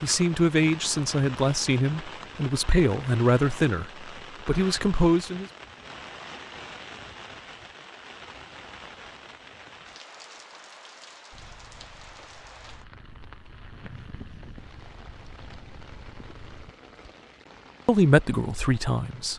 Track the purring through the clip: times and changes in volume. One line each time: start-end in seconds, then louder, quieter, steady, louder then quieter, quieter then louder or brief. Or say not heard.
11.3-16.8 louder.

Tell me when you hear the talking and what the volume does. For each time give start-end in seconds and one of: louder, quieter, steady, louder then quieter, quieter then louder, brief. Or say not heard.
0.0-5.5 steady
17.9-19.3 brief.